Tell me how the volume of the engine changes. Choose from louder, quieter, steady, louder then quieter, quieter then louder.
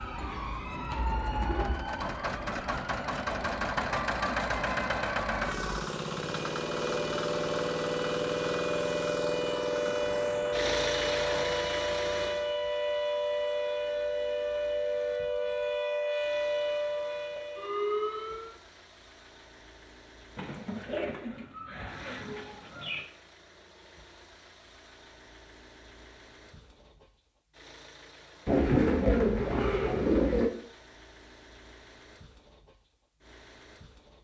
quieter.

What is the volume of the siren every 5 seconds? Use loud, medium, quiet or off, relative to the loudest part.
medium, loud, loud, loud, off, off, off.